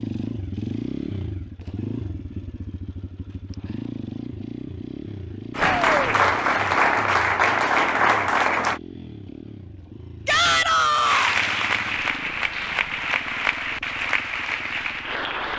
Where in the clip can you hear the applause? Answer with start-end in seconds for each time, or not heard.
5.5-8.8, 11.1-15.5.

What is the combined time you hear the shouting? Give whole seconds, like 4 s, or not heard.
2 s.